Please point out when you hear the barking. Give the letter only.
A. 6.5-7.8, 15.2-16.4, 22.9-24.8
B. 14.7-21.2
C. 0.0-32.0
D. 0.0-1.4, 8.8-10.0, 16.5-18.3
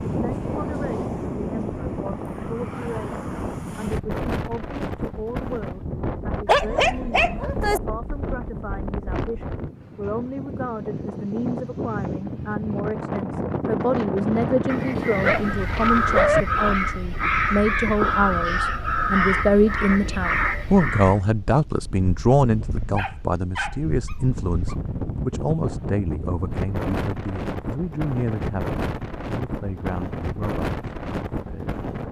A.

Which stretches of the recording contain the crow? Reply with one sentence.
The crow can be heard from 14.7 to 21.2 s.